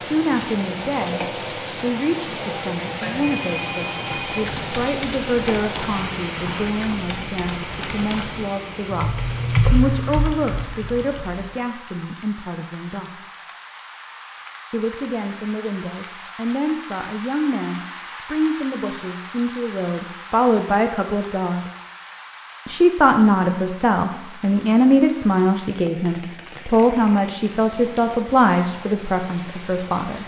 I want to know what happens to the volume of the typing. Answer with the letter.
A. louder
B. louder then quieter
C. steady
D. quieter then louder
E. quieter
B.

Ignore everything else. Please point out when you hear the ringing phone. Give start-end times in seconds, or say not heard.
3.0-4.7.